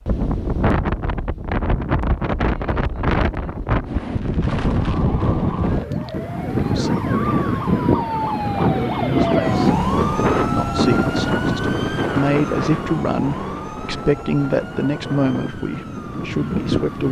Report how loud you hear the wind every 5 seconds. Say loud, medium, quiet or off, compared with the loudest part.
loud, loud, loud, medium.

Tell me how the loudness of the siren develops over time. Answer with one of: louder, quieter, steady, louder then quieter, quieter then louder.
louder then quieter.